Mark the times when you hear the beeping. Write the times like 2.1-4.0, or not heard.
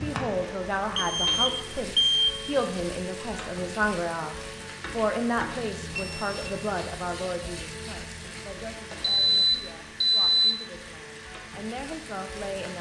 0.9-2.4, 6.0-6.5, 9.0-10.6.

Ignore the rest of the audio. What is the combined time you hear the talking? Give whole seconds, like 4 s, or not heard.
13 s.